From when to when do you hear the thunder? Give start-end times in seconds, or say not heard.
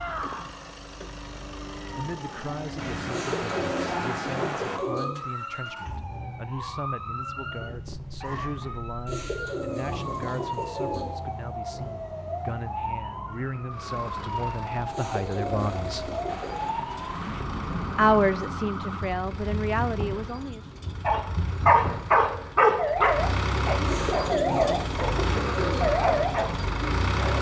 2.8-4.8, 16.2-18.3.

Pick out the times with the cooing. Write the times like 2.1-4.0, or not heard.
3.1-5.0, 9.1-11.1, 14.9-16.7, 23.9-25.8.